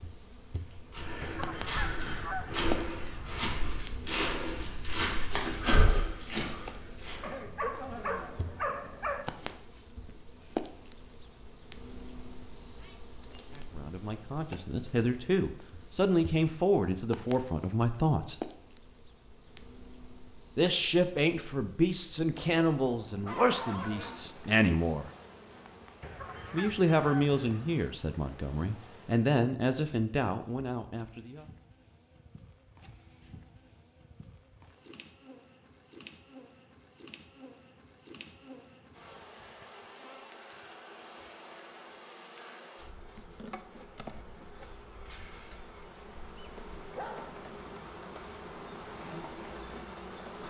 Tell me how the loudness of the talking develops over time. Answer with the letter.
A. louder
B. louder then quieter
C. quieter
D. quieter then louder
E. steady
E.